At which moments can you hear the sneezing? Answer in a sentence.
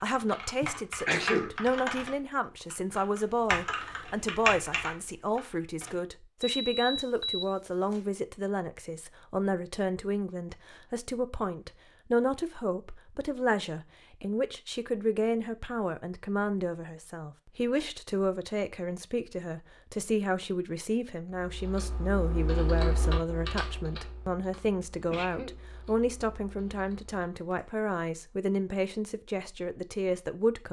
The sneezing can be heard from 0.6 to 1.6 s and from 25.1 to 25.6 s.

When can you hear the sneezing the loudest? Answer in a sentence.
The volume of the sneezing peaks at 1 second.